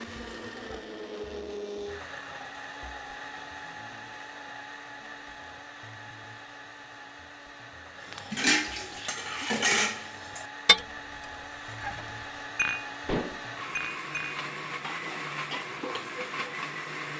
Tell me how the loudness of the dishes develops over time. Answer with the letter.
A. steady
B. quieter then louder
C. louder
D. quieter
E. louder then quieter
D.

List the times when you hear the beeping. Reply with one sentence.
The beeping can't be heard in this clip.